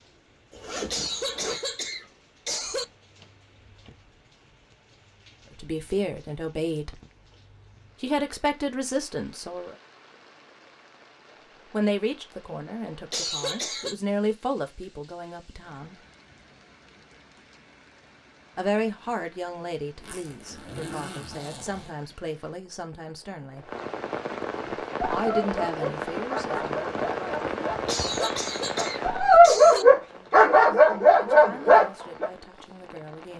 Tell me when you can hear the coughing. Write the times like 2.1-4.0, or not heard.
0.9-2.9, 13.1-13.9, 27.9-29.9.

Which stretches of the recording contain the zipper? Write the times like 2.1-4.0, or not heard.
0.5-1.6, 20.0-21.9.